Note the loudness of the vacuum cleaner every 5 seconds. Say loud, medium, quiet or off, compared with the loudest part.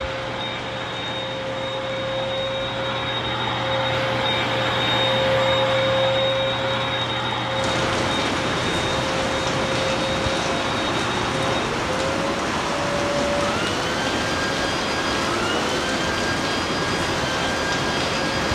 loud, loud, medium, medium.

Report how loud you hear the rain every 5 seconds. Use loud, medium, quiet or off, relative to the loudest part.
quiet, loud, loud, loud.